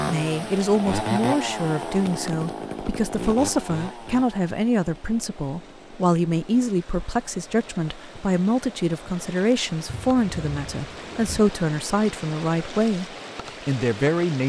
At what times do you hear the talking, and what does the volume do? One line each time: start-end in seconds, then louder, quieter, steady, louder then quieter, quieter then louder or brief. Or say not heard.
0.1-14.4 steady.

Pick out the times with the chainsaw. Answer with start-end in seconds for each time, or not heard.
0.0-6.8.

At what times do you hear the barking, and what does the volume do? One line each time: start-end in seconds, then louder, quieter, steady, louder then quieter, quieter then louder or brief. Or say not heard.
not heard.